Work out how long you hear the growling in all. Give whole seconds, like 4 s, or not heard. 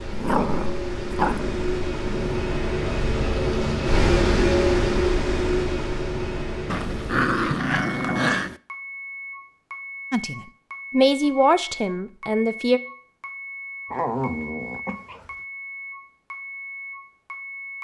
6 s.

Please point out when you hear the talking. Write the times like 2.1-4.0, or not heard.
10.1-12.8.